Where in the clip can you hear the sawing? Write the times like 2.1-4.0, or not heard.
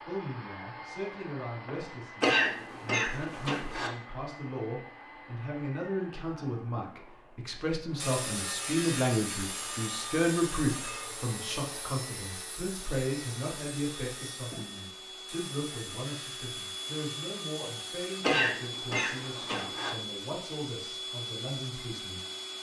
8.0-18.2.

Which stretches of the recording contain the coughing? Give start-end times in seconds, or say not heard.
2.2-3.9, 18.2-19.9.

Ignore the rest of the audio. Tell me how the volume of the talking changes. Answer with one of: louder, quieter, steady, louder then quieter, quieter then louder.
louder then quieter.